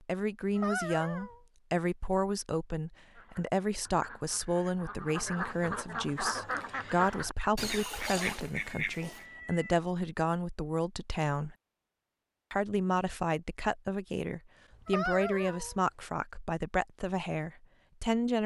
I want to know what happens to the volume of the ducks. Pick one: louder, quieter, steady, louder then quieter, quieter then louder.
louder.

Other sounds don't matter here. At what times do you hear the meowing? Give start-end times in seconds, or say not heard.
0.4-1.4, 7.8-9.8, 14.7-15.8.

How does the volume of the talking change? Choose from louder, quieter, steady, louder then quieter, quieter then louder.
steady.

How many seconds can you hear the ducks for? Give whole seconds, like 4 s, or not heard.
6 s.